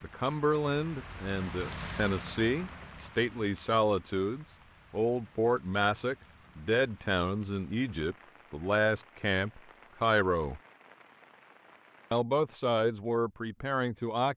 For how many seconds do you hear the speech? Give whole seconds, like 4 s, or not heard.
13 s.